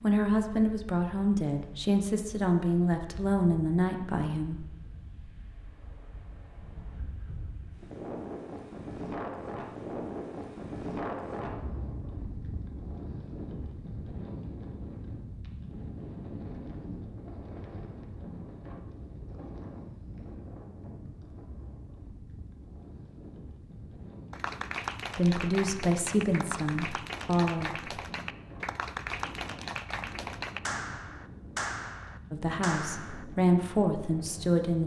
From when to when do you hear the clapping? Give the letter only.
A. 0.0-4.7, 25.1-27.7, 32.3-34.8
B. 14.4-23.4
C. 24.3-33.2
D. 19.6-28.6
C.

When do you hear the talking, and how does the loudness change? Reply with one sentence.
The talking can be heard from 0.0 to 4.7 s, at a steady volume; briefly from 25.1 to 27.7 s; and briefly from 32.3 to 34.8 s.